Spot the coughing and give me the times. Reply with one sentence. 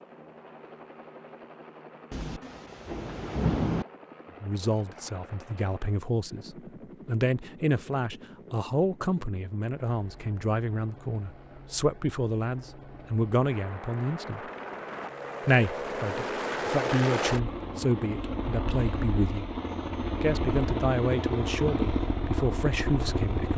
You can't hear the coughing here.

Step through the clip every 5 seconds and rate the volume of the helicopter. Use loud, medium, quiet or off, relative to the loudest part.
quiet, quiet, quiet, loud, loud.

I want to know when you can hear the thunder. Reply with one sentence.
The thunder can be heard from 2.1 to 3.9 s.